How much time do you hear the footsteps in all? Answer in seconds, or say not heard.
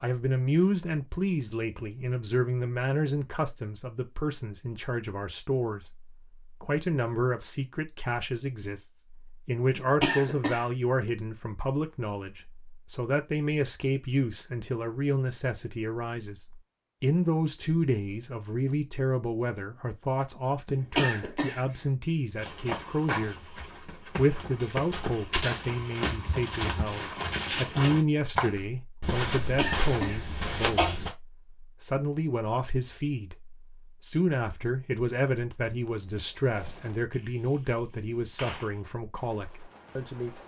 9 s.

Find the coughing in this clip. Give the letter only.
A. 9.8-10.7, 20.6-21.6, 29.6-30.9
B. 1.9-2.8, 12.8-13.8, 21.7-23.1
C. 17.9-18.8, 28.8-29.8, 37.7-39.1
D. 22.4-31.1
A.